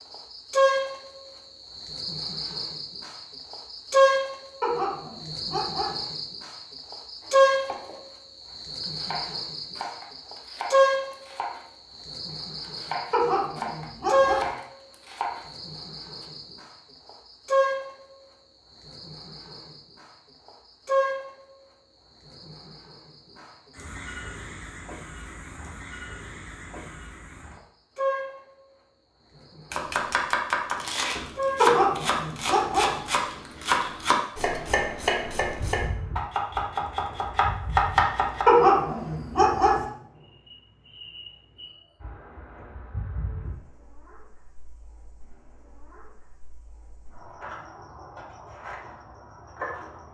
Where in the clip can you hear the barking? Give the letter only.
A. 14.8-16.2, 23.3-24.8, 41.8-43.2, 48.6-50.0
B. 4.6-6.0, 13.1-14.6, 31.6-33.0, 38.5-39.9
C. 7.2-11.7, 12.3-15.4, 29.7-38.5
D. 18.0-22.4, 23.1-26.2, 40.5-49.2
B.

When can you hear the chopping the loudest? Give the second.
38 s.